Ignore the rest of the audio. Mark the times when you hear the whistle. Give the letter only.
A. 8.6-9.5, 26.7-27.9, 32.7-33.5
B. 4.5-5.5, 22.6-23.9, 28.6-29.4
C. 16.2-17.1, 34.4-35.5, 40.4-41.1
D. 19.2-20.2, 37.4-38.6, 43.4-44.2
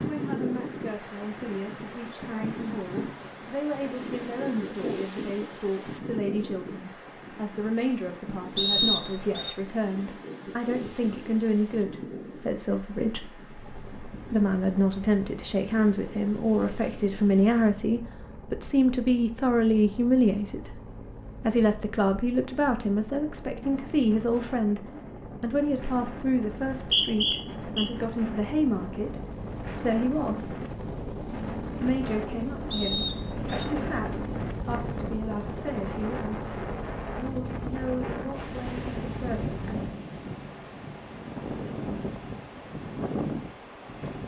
A.